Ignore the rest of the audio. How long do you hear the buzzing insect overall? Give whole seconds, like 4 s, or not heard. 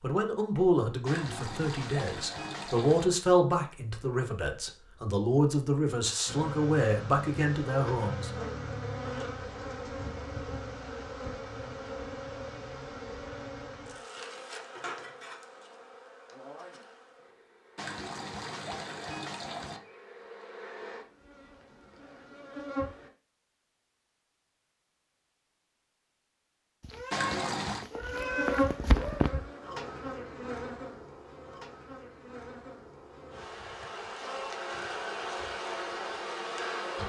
26 s.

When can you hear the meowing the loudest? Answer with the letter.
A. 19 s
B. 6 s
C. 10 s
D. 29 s
D.